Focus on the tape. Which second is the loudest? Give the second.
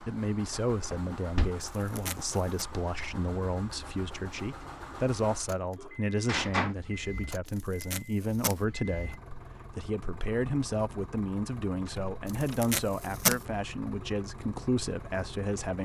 13 s.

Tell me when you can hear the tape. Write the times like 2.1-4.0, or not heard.
1.8-2.6, 7.5-8.6, 12.2-13.4.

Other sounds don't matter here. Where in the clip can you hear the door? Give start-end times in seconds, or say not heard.
0.9-1.5, 5.8-6.8, 11.8-12.6.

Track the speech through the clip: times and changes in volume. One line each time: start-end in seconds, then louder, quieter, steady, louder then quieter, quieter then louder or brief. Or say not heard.
0.0-15.7 steady.